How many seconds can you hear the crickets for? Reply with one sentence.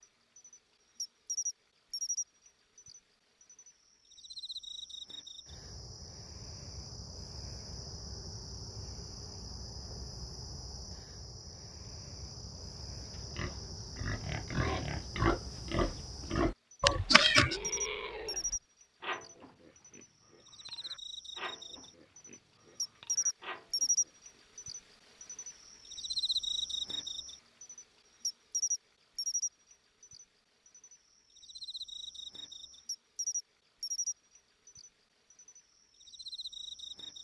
The crickets can be heard for 37 seconds in total.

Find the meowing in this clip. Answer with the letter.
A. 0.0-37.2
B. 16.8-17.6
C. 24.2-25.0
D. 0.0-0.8
B.